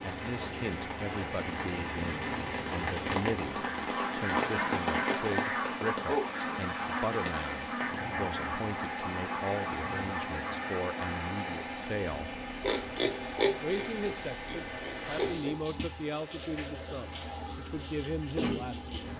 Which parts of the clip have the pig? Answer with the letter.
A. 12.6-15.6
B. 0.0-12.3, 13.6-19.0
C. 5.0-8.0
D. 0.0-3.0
A.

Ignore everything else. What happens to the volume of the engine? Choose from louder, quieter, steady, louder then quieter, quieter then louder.
steady.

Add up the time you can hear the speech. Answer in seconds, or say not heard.
18 s.